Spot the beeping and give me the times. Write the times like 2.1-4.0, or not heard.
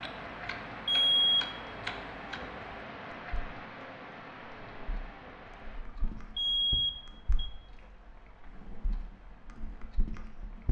0.8-1.4, 6.3-7.5.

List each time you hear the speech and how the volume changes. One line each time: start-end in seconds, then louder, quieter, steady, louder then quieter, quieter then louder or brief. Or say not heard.
not heard.